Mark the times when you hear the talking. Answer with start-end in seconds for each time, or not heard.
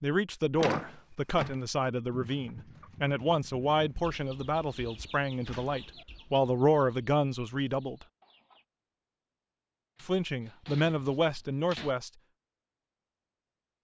0.0-8.1, 10.0-12.1.